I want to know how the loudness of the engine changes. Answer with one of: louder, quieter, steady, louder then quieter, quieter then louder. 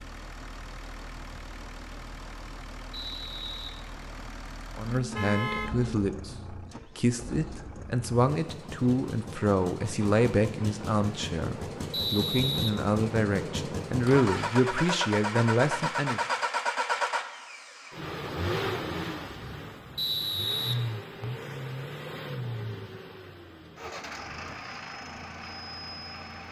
louder then quieter.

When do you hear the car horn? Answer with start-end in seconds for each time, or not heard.
5.0-6.0.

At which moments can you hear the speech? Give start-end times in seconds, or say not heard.
4.8-16.2.